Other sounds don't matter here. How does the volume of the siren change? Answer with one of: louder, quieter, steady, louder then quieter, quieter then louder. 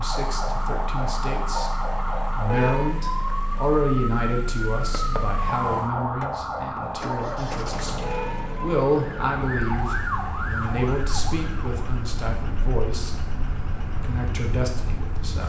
quieter.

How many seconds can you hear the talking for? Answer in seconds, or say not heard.
15 s.